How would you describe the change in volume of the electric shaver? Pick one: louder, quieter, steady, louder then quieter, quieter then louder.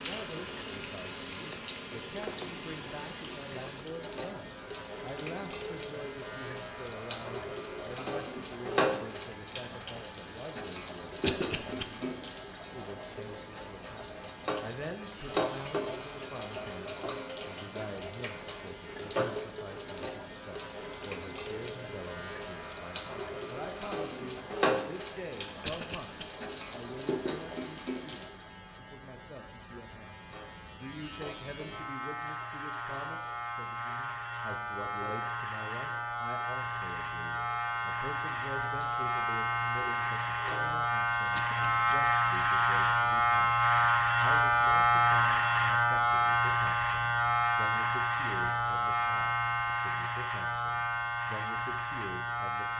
louder.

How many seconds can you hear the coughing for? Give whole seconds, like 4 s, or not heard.
2 s.